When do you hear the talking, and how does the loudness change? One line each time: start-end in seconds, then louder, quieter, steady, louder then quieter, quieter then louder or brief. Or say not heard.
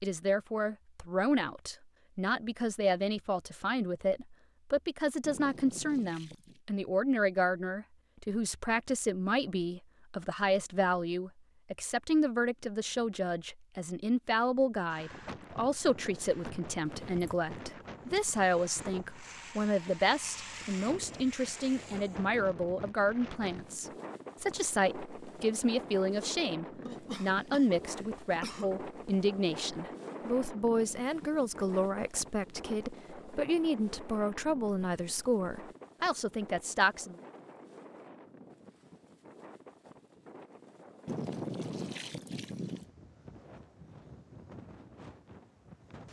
0.0-37.1 steady.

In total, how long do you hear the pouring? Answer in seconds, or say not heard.
3 s.